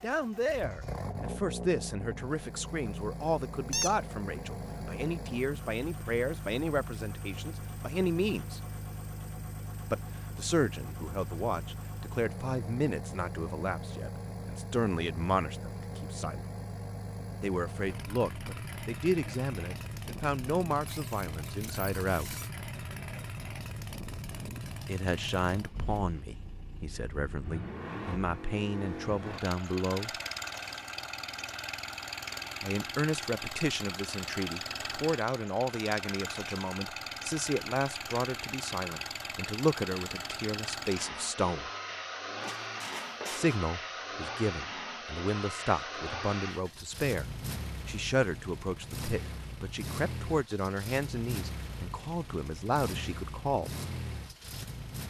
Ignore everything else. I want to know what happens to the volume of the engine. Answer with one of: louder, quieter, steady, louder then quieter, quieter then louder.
steady.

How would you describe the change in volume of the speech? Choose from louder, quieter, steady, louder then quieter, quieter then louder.
steady.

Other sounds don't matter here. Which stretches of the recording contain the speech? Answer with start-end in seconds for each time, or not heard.
0.0-8.6, 9.9-16.4, 17.4-22.4, 24.9-30.1, 32.6-41.7, 43.3-53.7.